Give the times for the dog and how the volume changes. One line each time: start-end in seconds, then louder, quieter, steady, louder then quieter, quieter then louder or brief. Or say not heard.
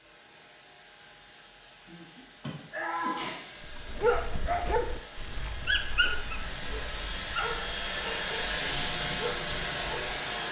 3.6-10.2 quieter.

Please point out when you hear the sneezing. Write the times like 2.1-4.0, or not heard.
1.9-3.4.